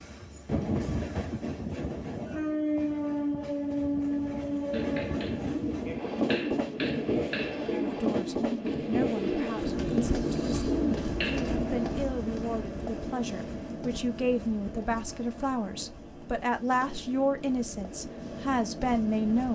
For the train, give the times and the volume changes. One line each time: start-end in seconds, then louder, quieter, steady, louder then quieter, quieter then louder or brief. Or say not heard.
0.0-19.4 quieter.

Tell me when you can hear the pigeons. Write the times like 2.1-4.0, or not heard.
4.7-11.6.